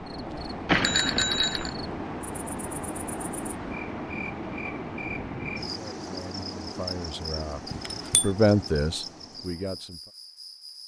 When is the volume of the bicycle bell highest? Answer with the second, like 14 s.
1 s.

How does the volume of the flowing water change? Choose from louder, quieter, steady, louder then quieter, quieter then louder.
quieter.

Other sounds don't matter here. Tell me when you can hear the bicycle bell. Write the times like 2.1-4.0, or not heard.
0.7-1.7, 7.7-8.3.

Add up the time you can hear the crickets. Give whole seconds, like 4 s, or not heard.
11 s.